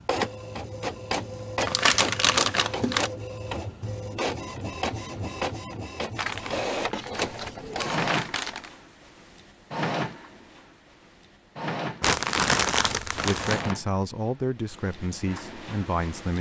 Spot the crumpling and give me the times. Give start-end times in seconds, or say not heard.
1.6-3.1, 6.2-8.7, 12.0-13.8.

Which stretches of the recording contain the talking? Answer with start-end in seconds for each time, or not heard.
13.1-16.3.